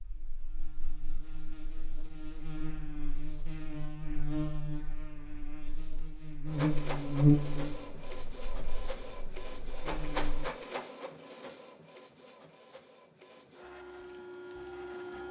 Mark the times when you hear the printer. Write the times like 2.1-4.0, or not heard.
6.5-15.2.